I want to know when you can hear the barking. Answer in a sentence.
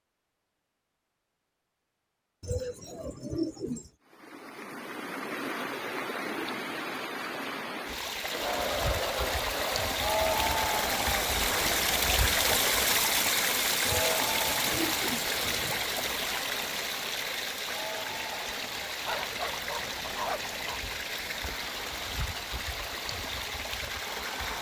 You can hear the barking from 19.1 to 20.8 s.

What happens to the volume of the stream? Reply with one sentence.
The loudness of the stream goes up, then down.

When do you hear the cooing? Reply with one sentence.
The cooing can be heard from 2.4 to 3.9 s and from 13.8 to 15.8 s.